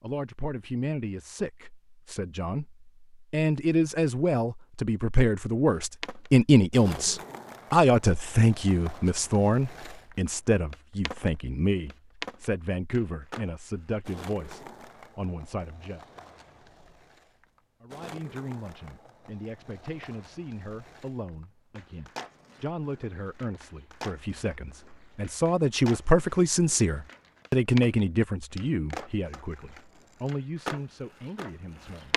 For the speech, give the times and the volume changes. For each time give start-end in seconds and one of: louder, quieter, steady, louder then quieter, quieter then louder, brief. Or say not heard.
0.0-16.0 louder then quieter
17.8-32.1 louder then quieter.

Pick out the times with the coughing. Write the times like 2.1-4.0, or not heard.
not heard.